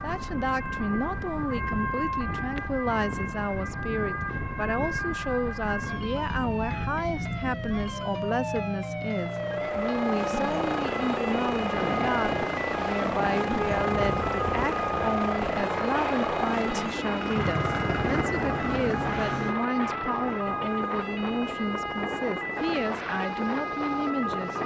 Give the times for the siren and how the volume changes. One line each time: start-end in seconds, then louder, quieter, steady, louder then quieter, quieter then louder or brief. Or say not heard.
0.0-24.6 steady.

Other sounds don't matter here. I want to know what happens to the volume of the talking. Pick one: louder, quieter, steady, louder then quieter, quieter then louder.
steady.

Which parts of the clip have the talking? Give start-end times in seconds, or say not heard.
0.0-24.6.